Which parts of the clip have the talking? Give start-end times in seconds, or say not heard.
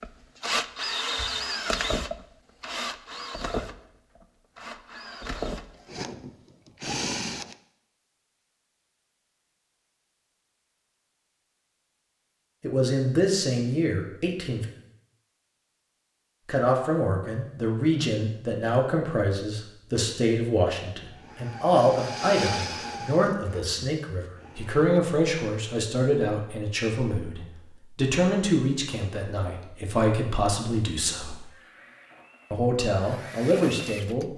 12.6-14.7, 16.4-31.4, 32.5-34.3.